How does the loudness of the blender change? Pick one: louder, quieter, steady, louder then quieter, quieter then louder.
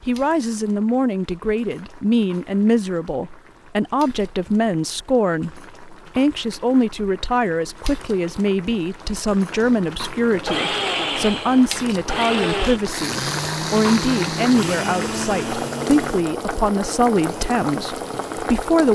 quieter.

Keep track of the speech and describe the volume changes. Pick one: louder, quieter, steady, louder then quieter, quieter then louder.
steady.